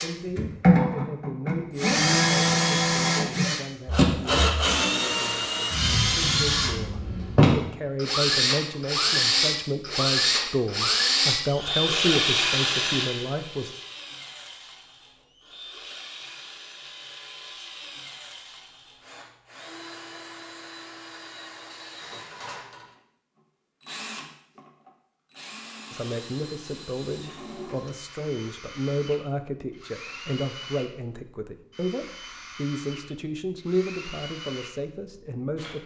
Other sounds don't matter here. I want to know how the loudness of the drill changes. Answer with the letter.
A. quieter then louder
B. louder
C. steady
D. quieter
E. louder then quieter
D.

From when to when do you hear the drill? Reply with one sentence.
You can hear the drill from 0.0 to 35.8 s.